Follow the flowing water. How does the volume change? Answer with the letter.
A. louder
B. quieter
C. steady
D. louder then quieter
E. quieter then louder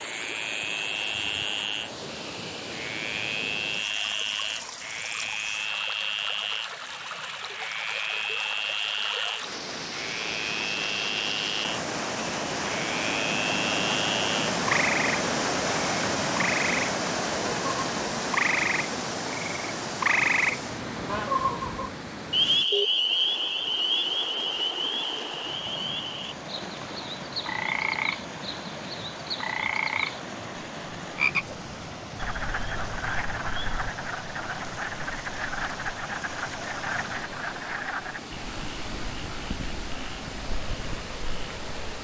D.